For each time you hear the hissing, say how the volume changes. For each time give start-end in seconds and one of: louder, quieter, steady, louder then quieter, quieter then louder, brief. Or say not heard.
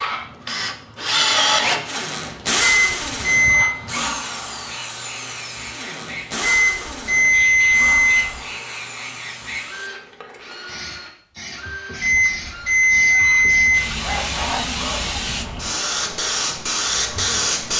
0.0-17.7 louder.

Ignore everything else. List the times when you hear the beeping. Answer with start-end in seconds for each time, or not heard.
2.5-3.8, 6.4-8.6, 12.0-14.0.